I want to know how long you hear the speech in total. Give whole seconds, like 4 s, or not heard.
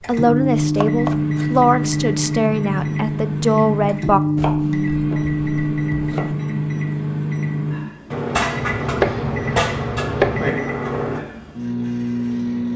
4 s.